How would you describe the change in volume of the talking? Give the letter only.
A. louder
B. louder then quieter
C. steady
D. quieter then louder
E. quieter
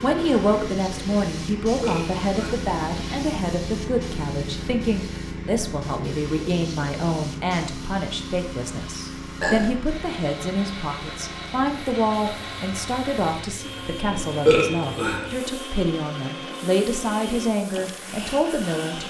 C.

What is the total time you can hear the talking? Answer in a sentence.
You can hear the talking for 19 seconds altogether.